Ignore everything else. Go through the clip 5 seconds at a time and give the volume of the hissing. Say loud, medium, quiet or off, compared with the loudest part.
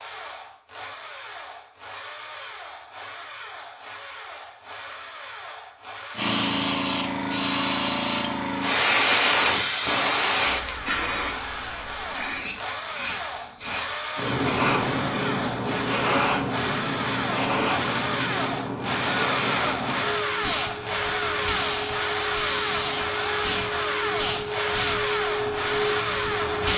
off, loud, loud, medium, medium, medium.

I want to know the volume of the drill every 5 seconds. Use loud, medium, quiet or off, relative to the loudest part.
quiet, medium, medium, loud, loud, loud.